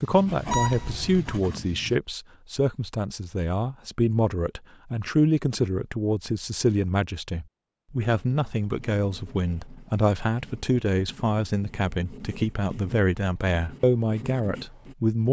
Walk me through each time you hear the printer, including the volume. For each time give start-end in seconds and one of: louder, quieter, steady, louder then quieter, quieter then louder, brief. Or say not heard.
not heard.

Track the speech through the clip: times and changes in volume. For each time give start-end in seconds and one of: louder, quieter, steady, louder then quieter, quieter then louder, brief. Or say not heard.
0.0-15.2 steady.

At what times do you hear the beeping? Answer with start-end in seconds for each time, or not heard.
0.5-1.3.